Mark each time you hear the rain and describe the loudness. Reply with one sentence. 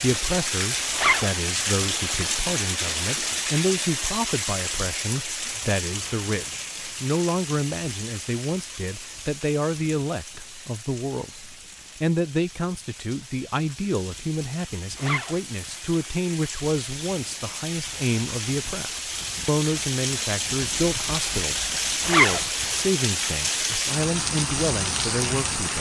You can hear the rain from 0.0 to 25.7 s, getting quieter then louder.